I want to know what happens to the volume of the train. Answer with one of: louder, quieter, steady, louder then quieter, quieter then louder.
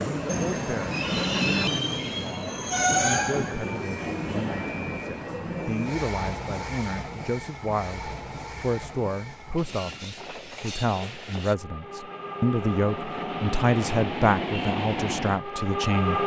quieter then louder.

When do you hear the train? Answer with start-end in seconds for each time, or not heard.
0.0-16.2.